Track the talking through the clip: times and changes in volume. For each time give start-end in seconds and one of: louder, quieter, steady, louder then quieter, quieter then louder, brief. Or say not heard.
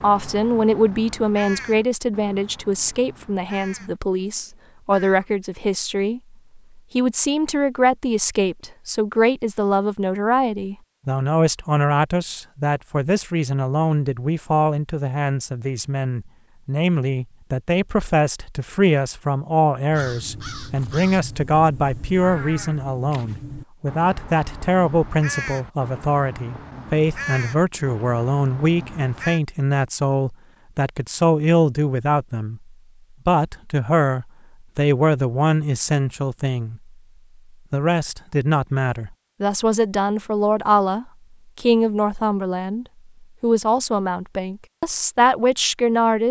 0.0-36.8 steady
37.7-46.2 steady.